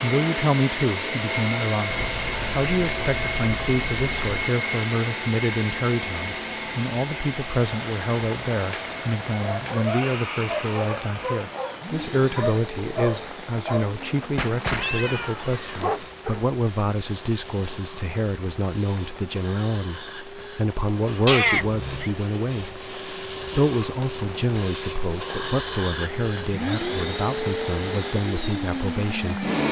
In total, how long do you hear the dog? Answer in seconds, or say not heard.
7 s.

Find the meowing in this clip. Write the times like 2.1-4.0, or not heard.
1.9-4.5, 14.8-15.5, 21.2-22.1.